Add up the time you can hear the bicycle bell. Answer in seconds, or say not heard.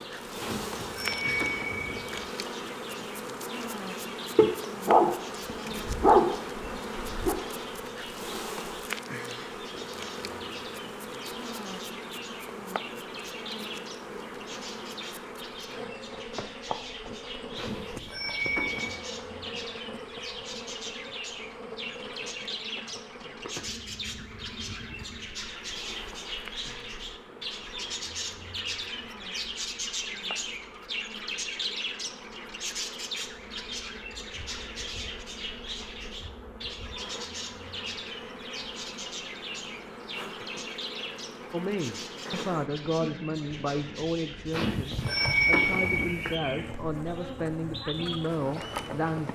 5 s.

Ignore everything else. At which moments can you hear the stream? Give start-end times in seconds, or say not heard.
not heard.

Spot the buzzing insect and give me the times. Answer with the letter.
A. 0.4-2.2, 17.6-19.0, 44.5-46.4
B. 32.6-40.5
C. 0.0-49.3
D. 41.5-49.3
C.